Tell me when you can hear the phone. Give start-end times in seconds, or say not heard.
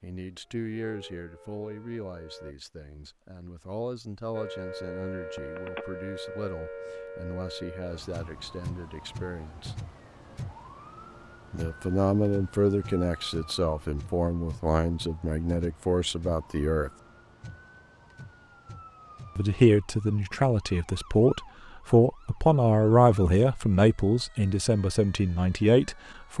5.3-5.8.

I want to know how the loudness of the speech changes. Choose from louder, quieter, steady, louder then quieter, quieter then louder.
louder.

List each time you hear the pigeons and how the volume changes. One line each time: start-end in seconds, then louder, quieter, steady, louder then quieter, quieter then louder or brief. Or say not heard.
not heard.